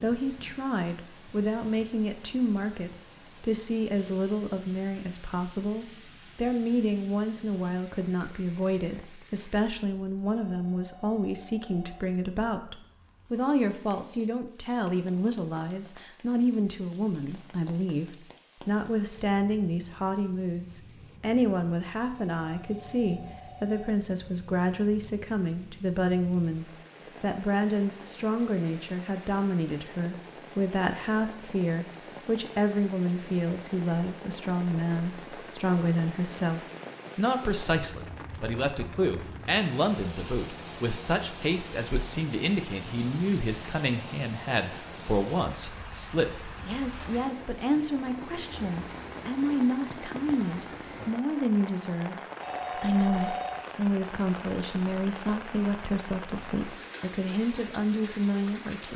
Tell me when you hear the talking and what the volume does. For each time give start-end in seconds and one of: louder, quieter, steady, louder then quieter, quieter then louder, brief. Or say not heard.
0.0-58.9 steady.